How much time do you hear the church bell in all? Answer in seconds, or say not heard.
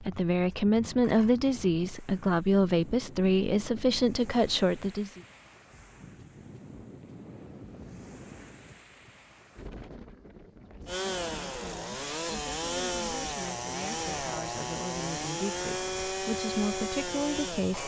not heard.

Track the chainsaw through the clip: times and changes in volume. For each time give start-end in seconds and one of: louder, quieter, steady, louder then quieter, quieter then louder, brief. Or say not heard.
10.8-17.8 steady.